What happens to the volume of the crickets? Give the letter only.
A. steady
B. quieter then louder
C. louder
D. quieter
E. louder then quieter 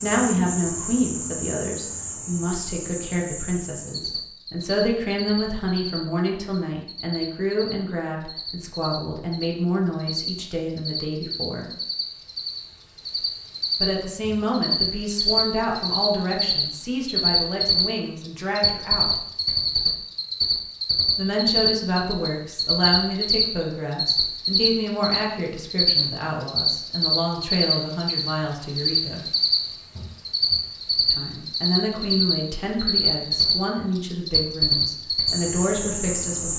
C.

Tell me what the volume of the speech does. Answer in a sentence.
The volume of the speech stays about the same.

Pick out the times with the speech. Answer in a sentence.
The speech can be heard from 0.0 to 11.7 s, from 13.8 to 19.2 s, from 21.1 to 29.2 s and from 31.1 to 36.5 s.